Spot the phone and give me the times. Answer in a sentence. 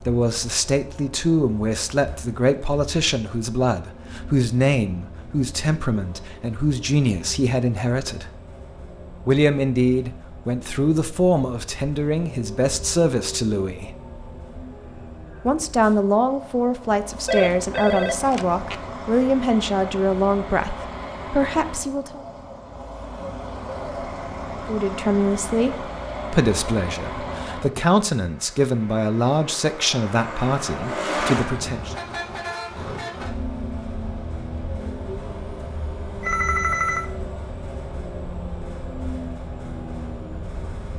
You can hear the phone from 17.2 to 18.8 s and from 36.2 to 37.1 s.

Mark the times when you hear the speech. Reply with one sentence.
You can hear the speech from 0.1 to 8.3 s, from 9.2 to 13.9 s, from 15.4 to 22.2 s and from 24.6 to 31.9 s.